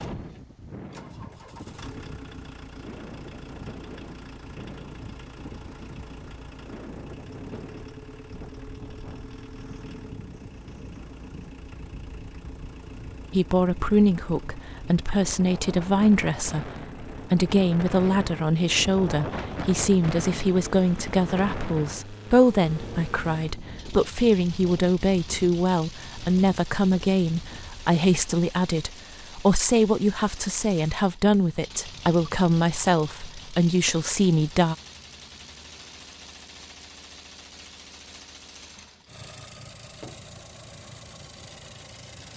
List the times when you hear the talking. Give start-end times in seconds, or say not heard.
13.3-34.8.